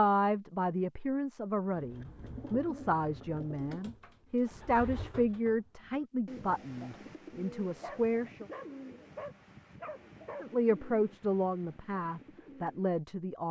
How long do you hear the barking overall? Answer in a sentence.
You can hear the barking for 3 seconds altogether.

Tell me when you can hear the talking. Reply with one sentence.
You can hear the talking from 0.0 to 8.4 s and from 10.4 to 13.4 s.